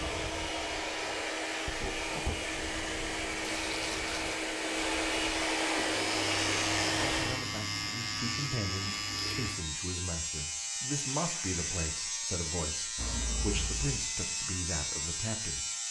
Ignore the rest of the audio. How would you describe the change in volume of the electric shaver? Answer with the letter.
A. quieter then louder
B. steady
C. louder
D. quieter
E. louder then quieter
B.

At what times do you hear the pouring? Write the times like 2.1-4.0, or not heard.
2.3-4.3, 12.9-14.0.